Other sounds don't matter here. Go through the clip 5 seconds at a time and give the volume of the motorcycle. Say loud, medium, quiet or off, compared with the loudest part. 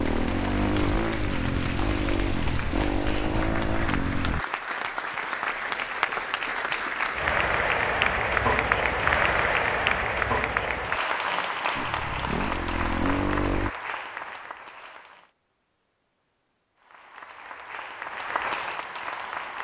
loud, off, loud, off.